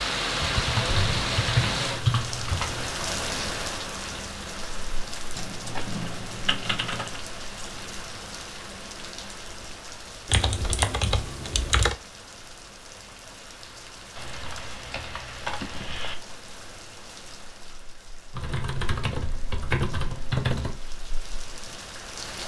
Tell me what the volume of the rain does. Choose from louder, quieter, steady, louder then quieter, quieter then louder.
quieter.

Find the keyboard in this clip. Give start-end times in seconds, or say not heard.
0.4-2.9, 5.3-7.2, 10.3-11.9, 14.2-16.1, 18.4-20.8.